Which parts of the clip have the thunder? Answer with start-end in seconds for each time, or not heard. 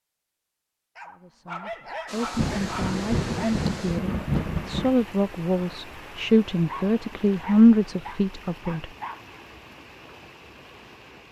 2.4-5.0.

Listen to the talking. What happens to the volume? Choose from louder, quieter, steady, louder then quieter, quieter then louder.
louder.